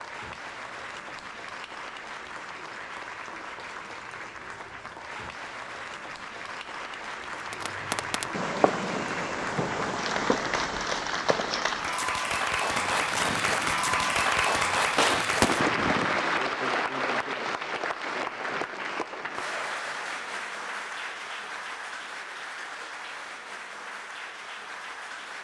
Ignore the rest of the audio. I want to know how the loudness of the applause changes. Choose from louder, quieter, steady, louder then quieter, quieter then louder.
louder then quieter.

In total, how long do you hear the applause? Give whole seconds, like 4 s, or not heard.
25 s.